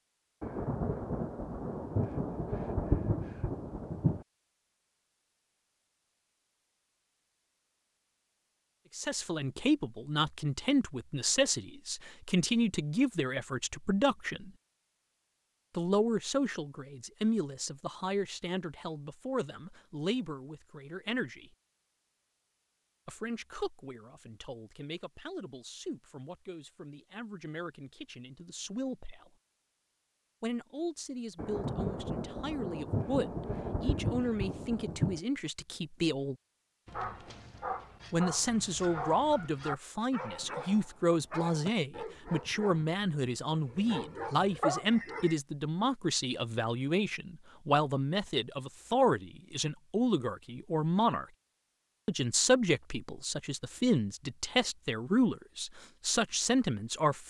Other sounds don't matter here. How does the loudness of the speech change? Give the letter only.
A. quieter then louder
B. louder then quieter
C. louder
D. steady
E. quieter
A.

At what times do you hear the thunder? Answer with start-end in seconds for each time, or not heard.
0.4-4.2, 31.4-35.2.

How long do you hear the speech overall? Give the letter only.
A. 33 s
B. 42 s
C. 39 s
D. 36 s
B.